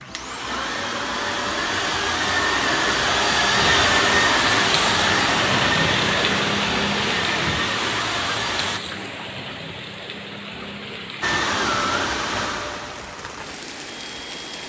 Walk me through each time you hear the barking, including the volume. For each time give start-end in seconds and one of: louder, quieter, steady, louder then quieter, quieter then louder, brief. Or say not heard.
not heard.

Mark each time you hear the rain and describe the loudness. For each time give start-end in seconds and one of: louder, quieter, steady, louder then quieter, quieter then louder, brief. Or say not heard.
3.5-14.6 quieter.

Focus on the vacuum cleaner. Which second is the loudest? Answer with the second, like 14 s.
4 s.